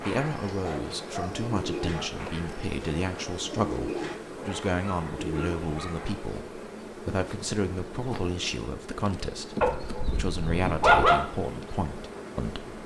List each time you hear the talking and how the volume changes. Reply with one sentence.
The talking can be heard from 0.0 to 12.7 s, at a steady volume.